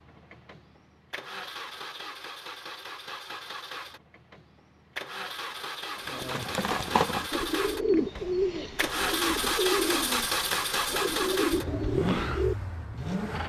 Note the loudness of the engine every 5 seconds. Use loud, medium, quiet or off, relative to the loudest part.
medium, loud, loud.